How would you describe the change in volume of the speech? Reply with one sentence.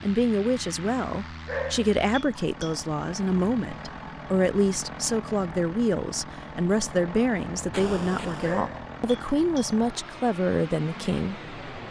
The loudness of the speech stays about the same.